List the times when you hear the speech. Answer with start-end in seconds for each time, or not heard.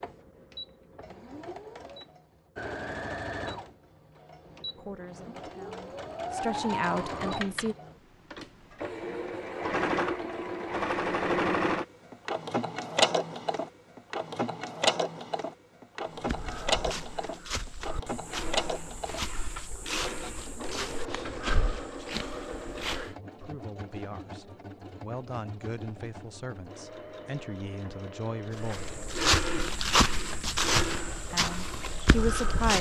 4.8-7.8, 23.4-28.9, 31.3-32.7.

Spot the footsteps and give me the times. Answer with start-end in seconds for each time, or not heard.
16.1-23.1, 28.6-32.7.